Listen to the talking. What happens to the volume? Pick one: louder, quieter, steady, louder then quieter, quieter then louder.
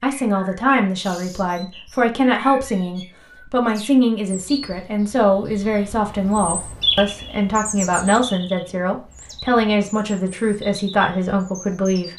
steady.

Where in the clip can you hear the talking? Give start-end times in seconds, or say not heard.
0.0-12.1.